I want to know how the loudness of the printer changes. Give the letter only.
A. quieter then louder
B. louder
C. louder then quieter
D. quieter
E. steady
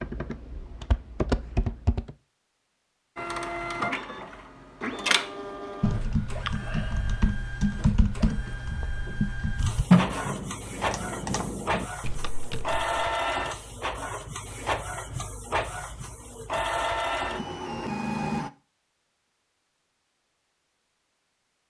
A.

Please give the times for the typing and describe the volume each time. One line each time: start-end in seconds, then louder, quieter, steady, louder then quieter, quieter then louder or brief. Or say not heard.
0.0-2.1 brief
5.8-12.9 louder then quieter.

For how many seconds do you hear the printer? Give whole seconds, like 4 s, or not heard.
15 s.